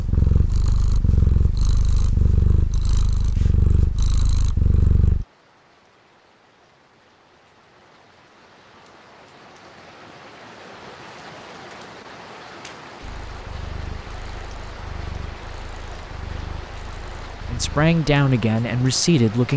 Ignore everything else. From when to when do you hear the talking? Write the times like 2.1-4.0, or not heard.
17.5-19.5.